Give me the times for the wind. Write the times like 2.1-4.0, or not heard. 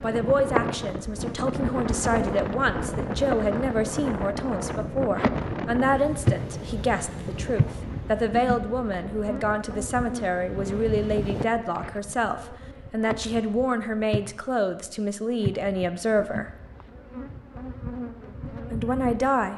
0.0-11.4.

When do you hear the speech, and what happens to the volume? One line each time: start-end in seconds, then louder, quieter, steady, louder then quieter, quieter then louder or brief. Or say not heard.
0.0-16.5 steady
18.7-19.5 brief.